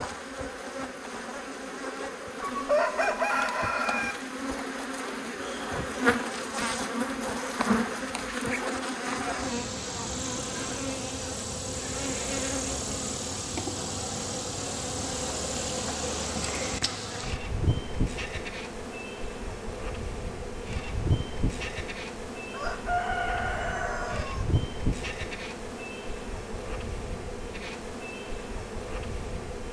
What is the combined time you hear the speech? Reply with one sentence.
You can't hear the speech here.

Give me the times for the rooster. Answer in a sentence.
The rooster can be heard from 2.4 to 4.2 s and from 22.5 to 24.4 s.